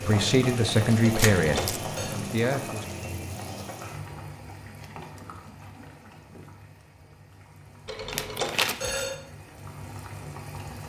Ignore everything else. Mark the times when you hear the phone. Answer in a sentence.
The phone can be heard from 1.0 to 2.1 s and from 7.8 to 9.2 s.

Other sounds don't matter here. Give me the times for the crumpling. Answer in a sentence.
The crumpling can be heard from 1.1 to 1.8 s and from 8.1 to 9.1 s.